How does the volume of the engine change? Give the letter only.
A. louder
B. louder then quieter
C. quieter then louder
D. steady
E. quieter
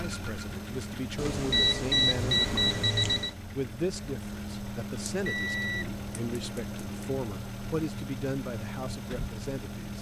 D.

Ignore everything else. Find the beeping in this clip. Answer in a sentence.
You can hear the beeping from 1.1 to 3.4 s and from 5.0 to 7.0 s.